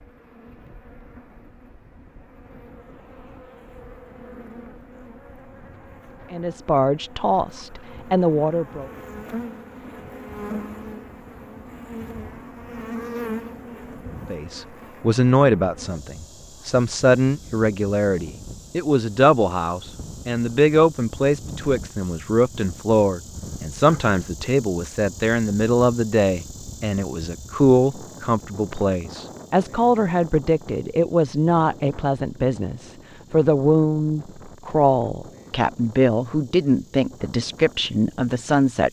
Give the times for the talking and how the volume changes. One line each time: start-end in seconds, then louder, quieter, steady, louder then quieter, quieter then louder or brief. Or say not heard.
6.3-8.9 brief
14.3-38.8 steady.